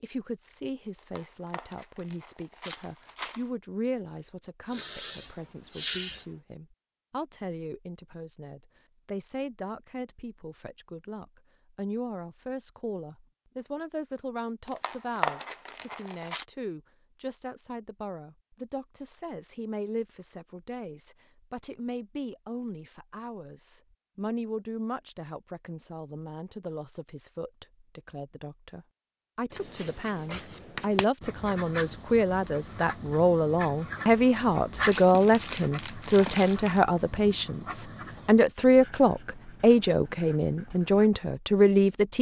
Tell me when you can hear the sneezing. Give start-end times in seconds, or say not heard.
4.7-6.2, 29.9-30.4.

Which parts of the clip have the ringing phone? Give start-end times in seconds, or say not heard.
not heard.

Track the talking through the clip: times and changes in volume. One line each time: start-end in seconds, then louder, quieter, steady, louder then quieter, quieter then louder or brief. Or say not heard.
0.0-42.1 louder.